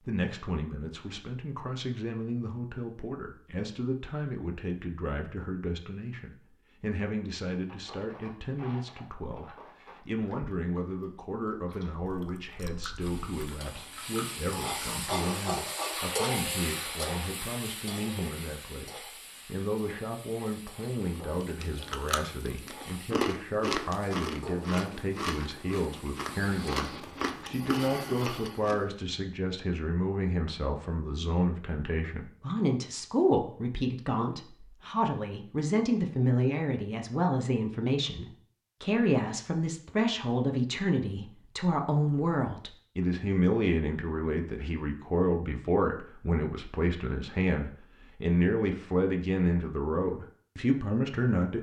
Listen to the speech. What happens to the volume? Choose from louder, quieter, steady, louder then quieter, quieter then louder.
louder.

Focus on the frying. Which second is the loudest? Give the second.
16 s.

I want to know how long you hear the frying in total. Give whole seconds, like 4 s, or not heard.
14 s.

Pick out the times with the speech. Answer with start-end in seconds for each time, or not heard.
0.1-51.5.